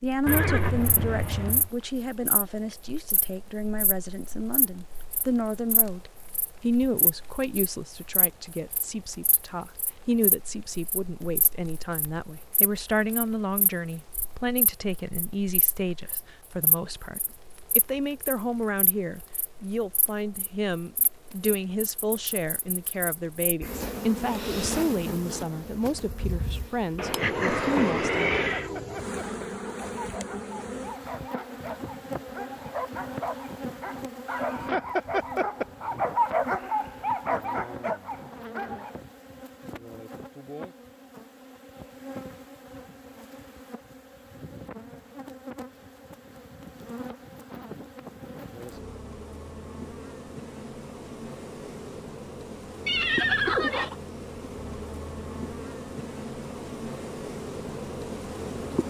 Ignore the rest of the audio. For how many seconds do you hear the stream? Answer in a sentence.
The stream can't be heard in this clip.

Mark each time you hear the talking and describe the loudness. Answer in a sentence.
You can hear the talking from 0.0 to 28.4 s, at a steady volume.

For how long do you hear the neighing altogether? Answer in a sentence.
You can hear the neighing for 4 seconds altogether.